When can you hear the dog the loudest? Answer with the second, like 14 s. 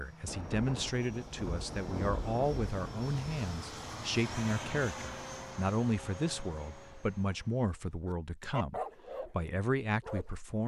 9 s.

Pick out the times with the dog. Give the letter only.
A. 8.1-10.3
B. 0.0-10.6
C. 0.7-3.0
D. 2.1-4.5
A.